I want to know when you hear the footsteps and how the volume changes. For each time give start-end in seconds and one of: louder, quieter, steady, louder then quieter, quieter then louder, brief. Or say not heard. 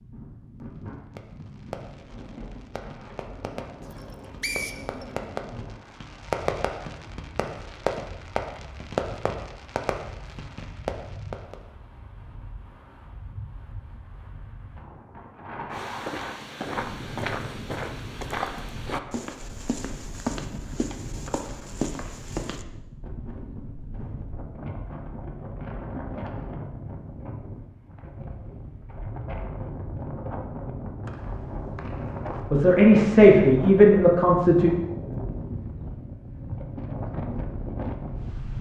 15.7-22.6 steady.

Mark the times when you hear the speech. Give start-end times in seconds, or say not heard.
32.5-34.7.